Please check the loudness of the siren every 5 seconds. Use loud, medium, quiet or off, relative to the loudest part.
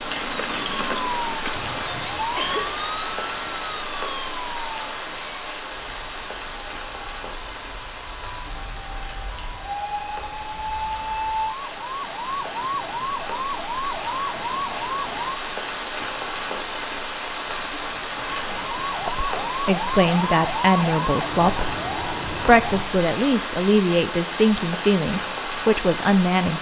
loud, medium, loud, loud, loud, off.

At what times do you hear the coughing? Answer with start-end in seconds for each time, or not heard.
1.5-2.8.